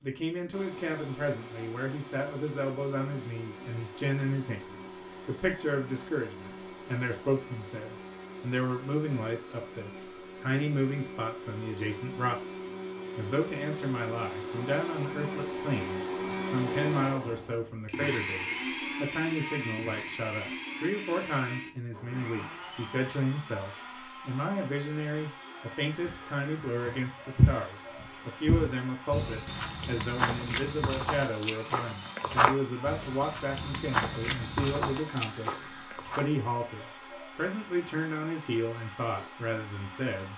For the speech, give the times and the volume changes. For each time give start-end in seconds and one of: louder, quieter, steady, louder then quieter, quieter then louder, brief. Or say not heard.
0.0-40.3 steady.